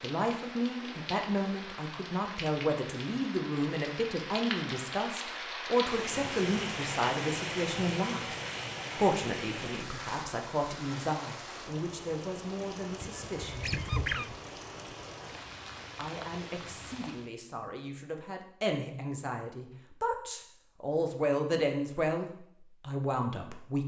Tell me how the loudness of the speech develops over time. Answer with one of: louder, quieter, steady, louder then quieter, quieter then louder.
quieter then louder.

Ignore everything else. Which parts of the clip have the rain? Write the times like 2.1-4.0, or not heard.
0.0-17.3.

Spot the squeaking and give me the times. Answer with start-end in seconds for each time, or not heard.
13.0-14.4.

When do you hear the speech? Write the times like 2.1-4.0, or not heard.
0.0-8.2, 8.9-14.3, 15.9-23.8.